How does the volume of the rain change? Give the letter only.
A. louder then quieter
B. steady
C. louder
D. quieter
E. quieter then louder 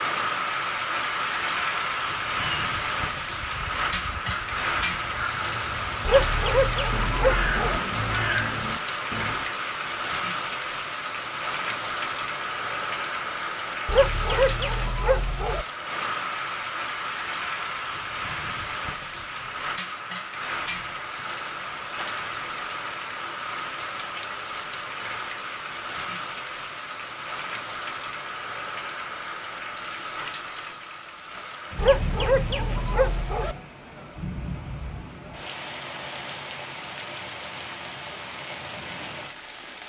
D.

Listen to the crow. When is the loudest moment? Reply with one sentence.
The volume of the crow peaks at 8 seconds.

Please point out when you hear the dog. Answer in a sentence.
The dog can be heard from 6.0 to 7.8 s, from 13.8 to 15.7 s and from 31.8 to 33.5 s.